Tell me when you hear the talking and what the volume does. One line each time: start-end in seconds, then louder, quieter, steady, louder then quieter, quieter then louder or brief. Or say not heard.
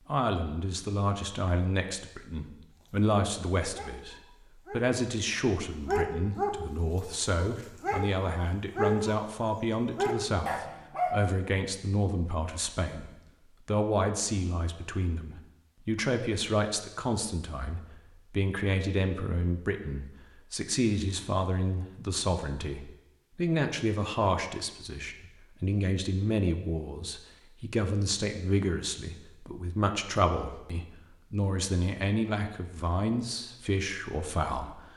0.1-34.9 steady.